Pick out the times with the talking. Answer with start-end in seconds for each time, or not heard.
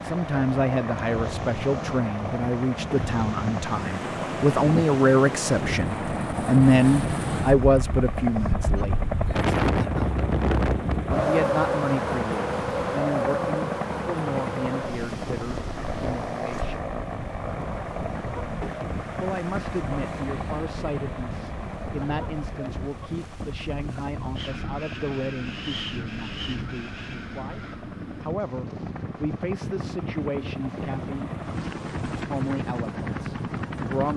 0.0-8.9, 11.1-16.9, 19.2-31.3, 32.3-34.1.